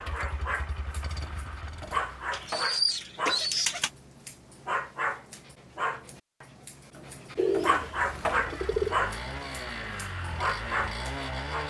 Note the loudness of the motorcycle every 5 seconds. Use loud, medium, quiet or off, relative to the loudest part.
medium, loud, loud.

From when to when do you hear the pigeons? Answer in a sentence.
The pigeons can be heard from 2.3 to 3.9 s and from 7.3 to 8.9 s.